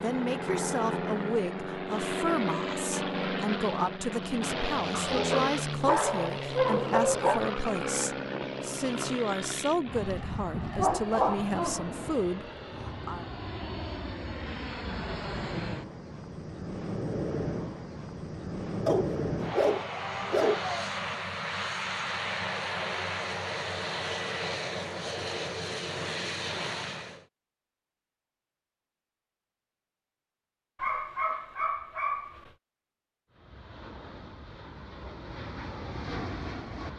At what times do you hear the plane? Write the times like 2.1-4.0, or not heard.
0.0-27.2, 33.3-36.9.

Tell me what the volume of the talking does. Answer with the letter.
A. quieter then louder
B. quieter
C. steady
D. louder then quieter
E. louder
C.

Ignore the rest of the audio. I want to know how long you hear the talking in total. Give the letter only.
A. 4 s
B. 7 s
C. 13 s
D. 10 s
C.